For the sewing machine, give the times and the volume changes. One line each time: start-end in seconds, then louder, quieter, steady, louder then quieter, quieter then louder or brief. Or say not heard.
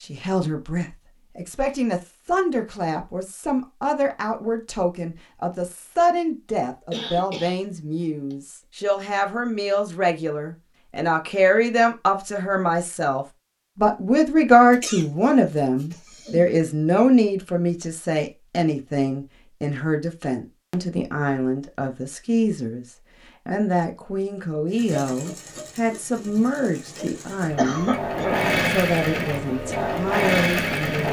24.7-31.0 louder.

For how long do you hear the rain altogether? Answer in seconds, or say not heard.
not heard.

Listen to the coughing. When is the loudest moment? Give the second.
28 s.